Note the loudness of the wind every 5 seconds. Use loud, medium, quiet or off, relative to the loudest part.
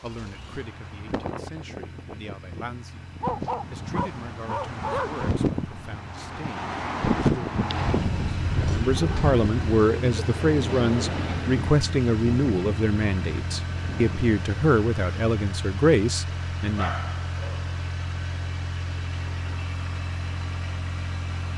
medium, loud, medium, off, off.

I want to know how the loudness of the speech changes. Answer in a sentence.
The loudness of the speech goes up.